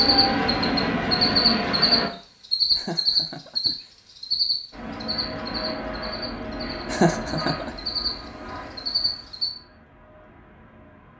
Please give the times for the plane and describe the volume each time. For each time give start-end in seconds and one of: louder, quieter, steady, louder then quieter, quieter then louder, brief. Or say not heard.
0.0-2.1 brief
4.7-11.1 quieter.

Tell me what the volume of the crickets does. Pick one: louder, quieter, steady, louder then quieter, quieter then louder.
quieter then louder.